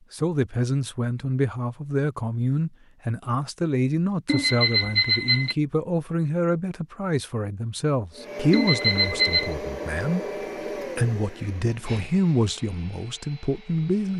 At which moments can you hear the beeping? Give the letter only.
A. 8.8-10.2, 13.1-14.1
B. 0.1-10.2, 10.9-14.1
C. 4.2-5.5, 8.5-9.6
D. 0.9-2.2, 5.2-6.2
C.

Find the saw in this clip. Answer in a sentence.
The saw can't be heard in this clip.